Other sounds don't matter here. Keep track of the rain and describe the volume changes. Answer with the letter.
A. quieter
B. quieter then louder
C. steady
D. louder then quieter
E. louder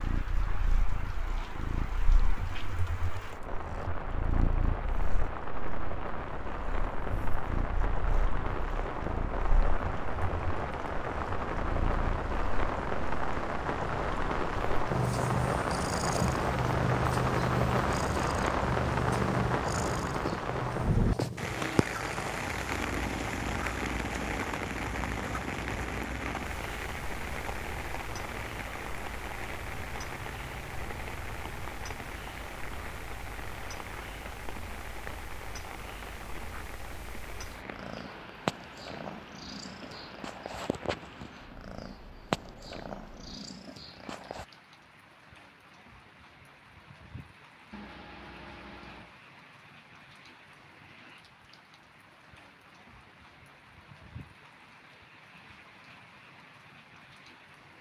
D.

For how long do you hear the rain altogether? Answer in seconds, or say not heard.
58 s.